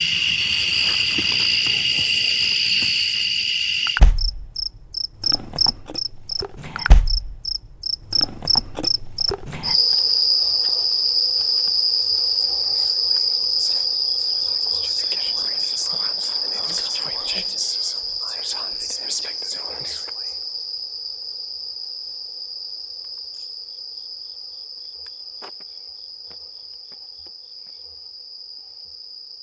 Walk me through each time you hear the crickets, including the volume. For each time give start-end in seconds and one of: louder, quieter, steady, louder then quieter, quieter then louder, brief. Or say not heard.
0.0-29.3 quieter.